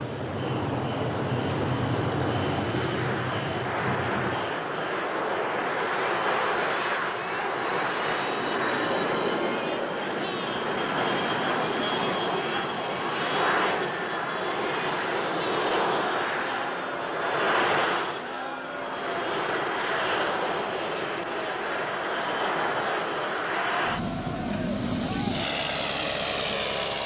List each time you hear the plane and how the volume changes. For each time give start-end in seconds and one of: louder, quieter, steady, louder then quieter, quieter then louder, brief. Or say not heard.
0.0-27.0 steady.